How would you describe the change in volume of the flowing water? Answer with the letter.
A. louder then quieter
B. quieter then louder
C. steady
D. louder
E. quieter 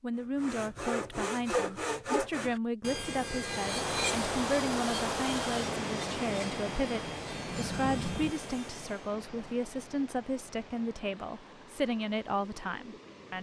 E.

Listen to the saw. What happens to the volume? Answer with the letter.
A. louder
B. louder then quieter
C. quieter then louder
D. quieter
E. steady
D.